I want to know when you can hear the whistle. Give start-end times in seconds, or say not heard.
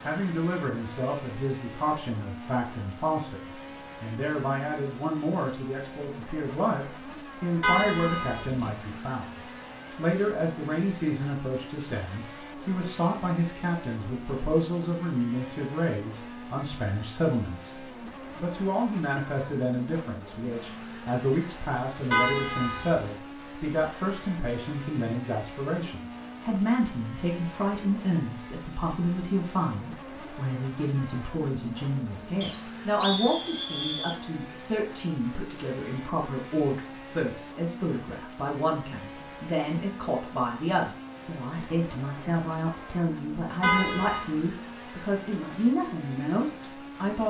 32.4-34.2.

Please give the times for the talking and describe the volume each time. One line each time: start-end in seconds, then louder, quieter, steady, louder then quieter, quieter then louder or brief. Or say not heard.
0.1-47.2 steady.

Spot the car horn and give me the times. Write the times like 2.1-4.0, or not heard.
7.6-8.7, 22.1-23.1, 43.6-44.2.